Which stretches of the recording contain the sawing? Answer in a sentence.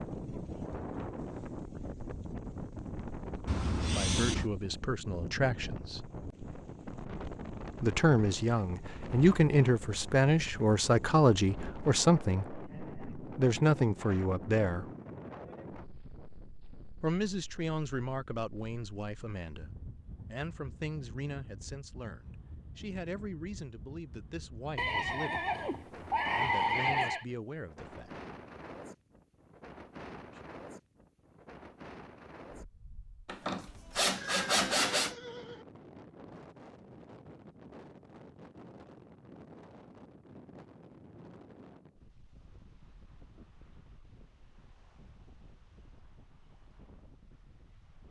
The sawing can be heard from 33.2 to 35.1 s.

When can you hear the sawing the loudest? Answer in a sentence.
The volume of the sawing peaks at 35 seconds.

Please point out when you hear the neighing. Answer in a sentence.
The neighing can be heard from 3.5 to 4.5 s, from 24.8 to 27.2 s and from 34.0 to 35.6 s.